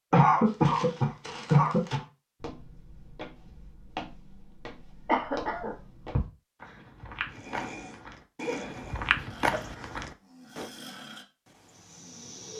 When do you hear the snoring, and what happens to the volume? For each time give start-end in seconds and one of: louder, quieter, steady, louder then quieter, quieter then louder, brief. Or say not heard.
7.3-12.5 quieter.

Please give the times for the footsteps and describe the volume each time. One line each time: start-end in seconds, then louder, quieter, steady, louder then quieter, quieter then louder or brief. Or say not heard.
0.5-10.7 louder.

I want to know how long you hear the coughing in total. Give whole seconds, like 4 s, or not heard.
4 s.